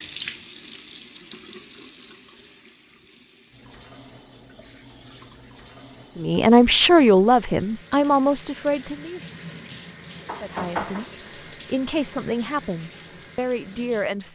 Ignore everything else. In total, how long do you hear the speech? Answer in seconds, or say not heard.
7 s.